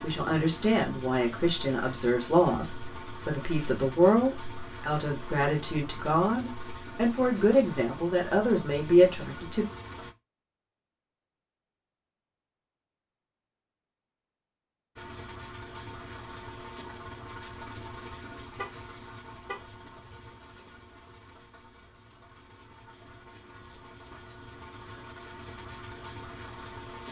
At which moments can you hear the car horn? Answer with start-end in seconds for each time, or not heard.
18.6-19.8.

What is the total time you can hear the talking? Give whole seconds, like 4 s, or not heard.
10 s.